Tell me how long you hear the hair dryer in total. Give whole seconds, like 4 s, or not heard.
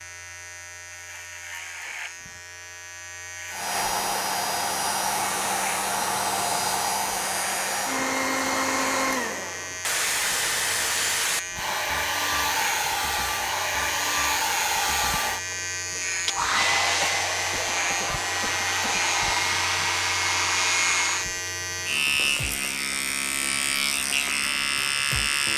18 s.